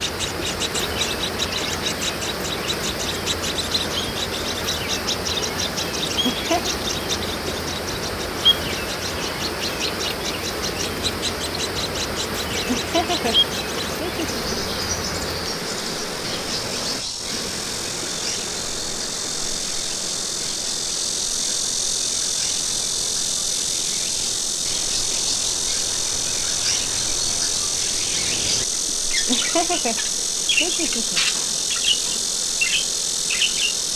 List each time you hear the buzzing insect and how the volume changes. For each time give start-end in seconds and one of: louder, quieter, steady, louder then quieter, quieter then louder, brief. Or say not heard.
0.2-33.9 louder.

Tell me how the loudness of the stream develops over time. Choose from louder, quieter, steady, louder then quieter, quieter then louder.
quieter.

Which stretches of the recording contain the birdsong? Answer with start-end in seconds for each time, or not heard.
0.0-33.8.